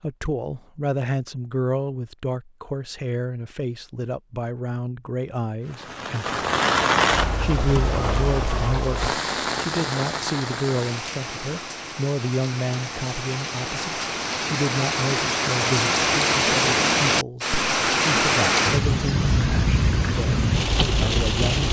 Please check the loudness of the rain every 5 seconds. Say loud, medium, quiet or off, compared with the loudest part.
off, loud, medium, loud, loud.